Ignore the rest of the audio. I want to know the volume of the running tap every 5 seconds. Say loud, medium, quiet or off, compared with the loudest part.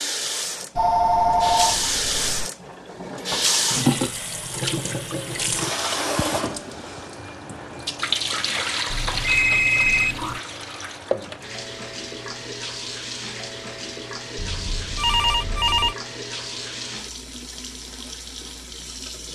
loud, loud, medium, medium.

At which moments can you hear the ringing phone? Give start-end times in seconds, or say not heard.
0.8-2.5, 8.9-10.4, 14.3-15.9.